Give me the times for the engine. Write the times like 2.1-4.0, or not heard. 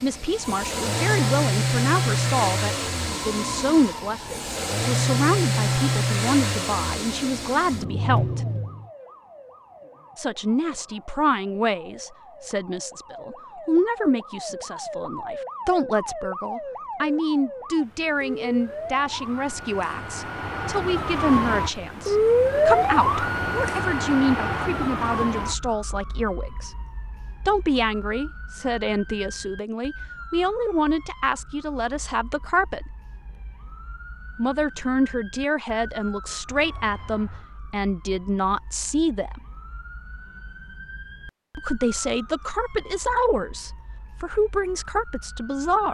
0.0-8.9.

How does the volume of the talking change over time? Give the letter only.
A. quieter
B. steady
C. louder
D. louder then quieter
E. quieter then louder
B.